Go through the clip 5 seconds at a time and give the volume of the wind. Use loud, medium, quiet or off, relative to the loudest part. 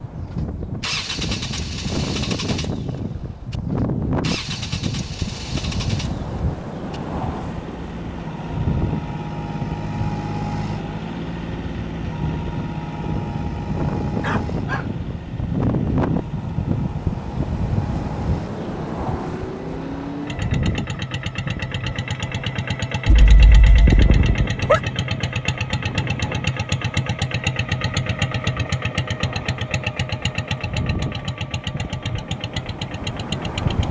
loud, loud, loud, loud, medium, medium, medium.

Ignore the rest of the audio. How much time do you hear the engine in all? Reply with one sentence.
The engine can be heard for 34 seconds in total.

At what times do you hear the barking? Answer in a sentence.
You can hear the barking from 14.2 to 14.8 s and from 23.1 to 24.8 s.